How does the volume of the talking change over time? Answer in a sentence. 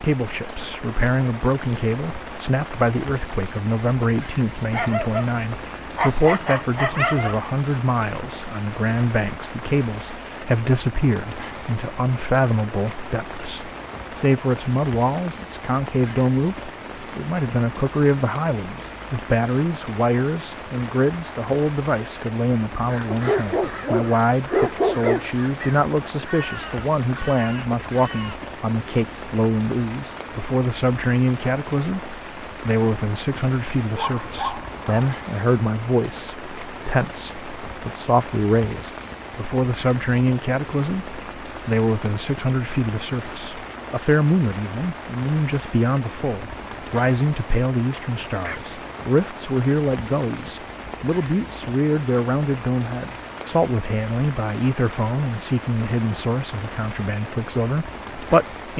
The loudness of the talking stays about the same.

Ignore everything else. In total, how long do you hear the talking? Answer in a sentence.
You can hear the talking for 59 seconds altogether.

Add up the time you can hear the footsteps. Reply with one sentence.
You can't hear the footsteps here.